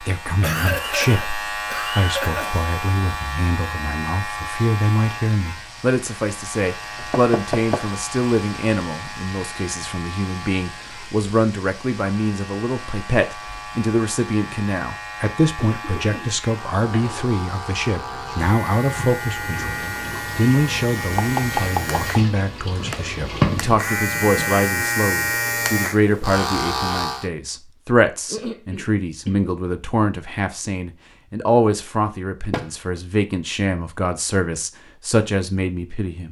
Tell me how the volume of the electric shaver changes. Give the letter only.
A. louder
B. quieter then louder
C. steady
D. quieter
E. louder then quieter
B.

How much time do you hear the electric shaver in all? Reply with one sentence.
You can hear the electric shaver for 27 seconds altogether.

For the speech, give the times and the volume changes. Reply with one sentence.
The speech can be heard from 0.0 to 36.2 s, at a steady volume.